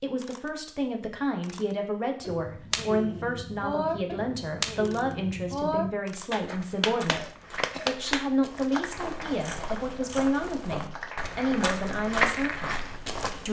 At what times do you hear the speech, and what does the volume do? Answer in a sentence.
You can hear the speech from 0.0 to 13.4 s, at a steady volume.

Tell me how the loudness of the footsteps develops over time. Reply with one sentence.
The volume of the footsteps goes up.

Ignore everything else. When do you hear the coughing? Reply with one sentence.
The coughing can be heard from 7.0 to 8.0 s.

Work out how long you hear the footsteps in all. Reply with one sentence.
You can hear the footsteps for 7 seconds altogether.